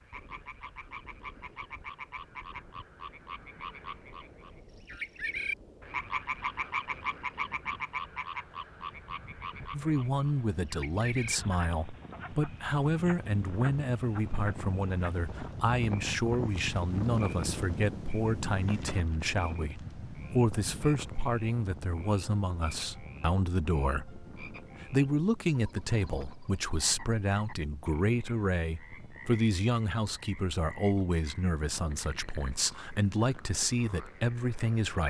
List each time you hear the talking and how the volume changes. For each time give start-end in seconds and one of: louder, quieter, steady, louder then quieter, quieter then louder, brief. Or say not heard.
9.7-35.0 steady.